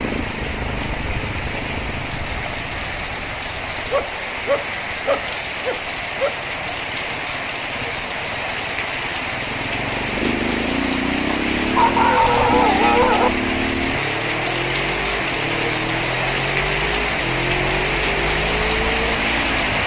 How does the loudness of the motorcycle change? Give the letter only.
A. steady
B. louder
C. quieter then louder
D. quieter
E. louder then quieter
C.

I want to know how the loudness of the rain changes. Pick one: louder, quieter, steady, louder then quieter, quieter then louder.
louder.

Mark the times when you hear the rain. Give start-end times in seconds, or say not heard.
0.0-19.8.